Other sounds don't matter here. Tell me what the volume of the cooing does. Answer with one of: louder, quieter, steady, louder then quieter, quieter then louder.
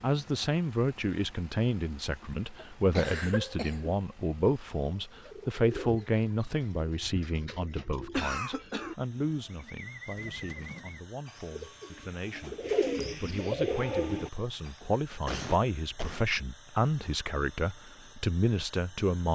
louder.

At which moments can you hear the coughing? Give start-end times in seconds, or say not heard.
2.5-4.0, 8.2-8.9, 15.2-16.3.